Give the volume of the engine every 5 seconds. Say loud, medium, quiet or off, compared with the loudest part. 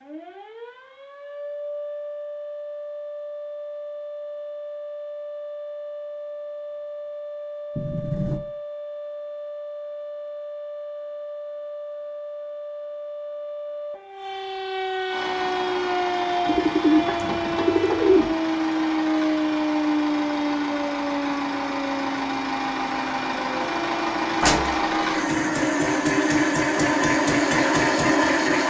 off, off, off, medium, medium, loud.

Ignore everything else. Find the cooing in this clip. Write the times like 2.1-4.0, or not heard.
16.4-18.4.